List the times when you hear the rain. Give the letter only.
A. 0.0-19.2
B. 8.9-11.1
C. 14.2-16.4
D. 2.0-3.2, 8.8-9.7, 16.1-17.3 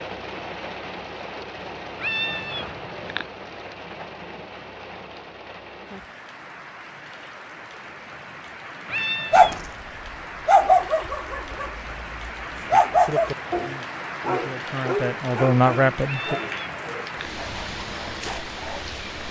A.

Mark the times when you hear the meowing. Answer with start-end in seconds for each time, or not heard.
2.0-3.2, 8.8-9.7, 16.1-17.3.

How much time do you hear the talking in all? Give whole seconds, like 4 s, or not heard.
2 s.